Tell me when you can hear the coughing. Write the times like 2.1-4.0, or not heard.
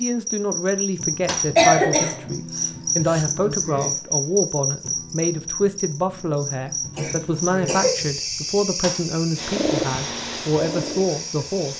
1.6-3.2, 7.0-8.0.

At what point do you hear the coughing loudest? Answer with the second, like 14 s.
2 s.